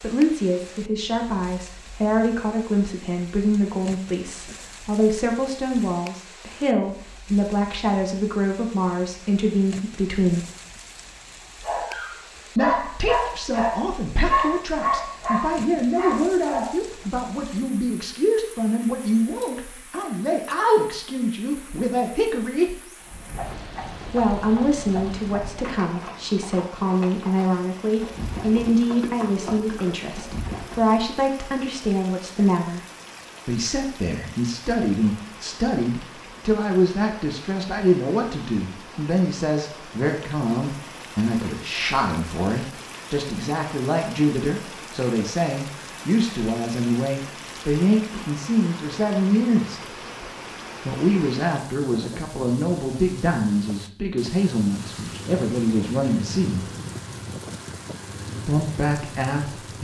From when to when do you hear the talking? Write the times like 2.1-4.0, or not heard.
0.0-10.4, 12.6-22.9, 24.1-32.9, 33.5-49.8, 50.9-56.6, 58.5-59.7.